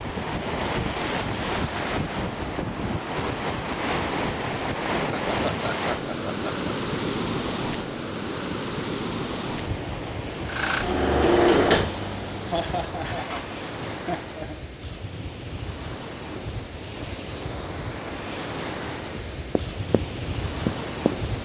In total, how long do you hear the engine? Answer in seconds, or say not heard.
3 s.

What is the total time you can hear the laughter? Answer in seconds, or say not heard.
4 s.